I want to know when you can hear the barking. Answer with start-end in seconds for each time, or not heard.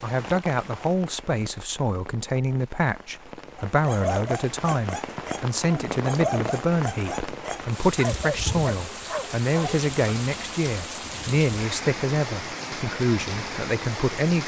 3.7-9.8.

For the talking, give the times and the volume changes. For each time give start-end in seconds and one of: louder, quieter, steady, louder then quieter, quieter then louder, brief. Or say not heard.
0.0-14.4 steady.